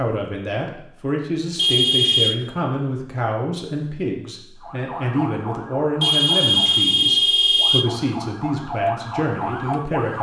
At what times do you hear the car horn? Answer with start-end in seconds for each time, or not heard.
1.6-2.4, 6.0-7.8.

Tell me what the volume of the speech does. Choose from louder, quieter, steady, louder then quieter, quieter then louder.
steady.